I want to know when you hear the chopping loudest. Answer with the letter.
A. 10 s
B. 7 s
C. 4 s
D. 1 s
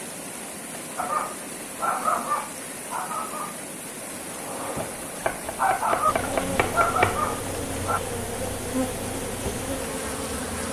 B.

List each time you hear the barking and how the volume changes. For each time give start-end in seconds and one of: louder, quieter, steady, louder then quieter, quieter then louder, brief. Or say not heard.
0.9-8.0 quieter then louder.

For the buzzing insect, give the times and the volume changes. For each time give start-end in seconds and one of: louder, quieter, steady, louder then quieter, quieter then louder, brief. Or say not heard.
6.0-10.6 steady.